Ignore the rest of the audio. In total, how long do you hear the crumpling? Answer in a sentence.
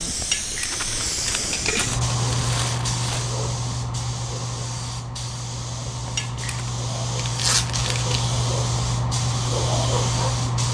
The crumpling can be heard for 4 seconds in total.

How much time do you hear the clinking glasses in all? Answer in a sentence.
You can hear the clinking glasses for 2 seconds altogether.